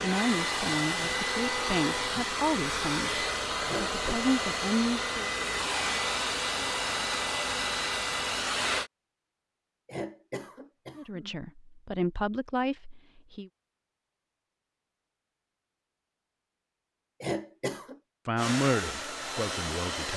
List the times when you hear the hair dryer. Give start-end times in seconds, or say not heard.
0.0-8.9, 18.4-20.1.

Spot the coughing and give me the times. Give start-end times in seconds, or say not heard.
3.6-4.2, 9.8-11.3, 17.2-17.9.